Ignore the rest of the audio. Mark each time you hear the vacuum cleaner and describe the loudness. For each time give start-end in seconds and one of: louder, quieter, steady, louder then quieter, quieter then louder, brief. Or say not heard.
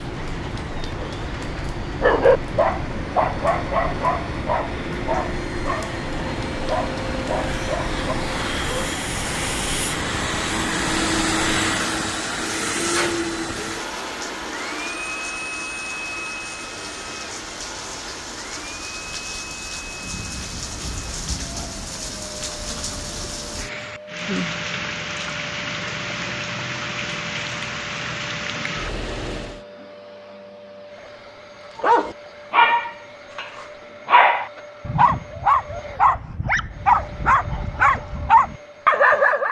0.1-39.4 louder then quieter.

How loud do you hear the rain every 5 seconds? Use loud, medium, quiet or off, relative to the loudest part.
loud, loud, medium, medium, loud, loud, off, off.